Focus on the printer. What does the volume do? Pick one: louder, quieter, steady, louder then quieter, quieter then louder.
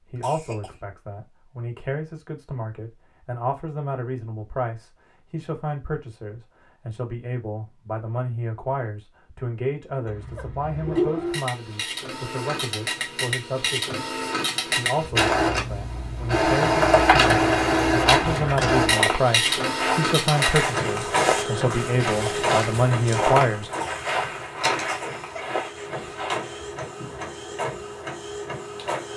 louder then quieter.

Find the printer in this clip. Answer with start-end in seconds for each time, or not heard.
10.7-29.1.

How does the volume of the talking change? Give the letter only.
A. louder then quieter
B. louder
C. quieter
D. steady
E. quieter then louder
B.